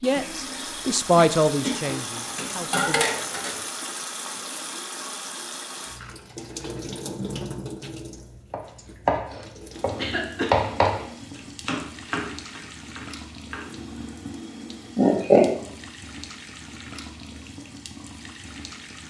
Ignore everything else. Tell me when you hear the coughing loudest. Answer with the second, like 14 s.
15 s.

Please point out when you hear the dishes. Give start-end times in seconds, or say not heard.
1.9-3.6.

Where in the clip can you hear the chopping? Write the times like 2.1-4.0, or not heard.
8.5-11.1, 11.7-13.9.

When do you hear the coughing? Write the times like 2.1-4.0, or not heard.
0.1-1.9, 9.9-10.6, 14.9-15.5.